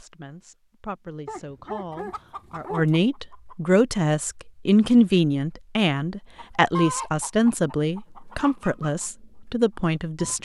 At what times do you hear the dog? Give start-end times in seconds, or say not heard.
1.2-2.9.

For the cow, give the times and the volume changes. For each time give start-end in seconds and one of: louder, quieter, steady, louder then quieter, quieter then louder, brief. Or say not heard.
not heard.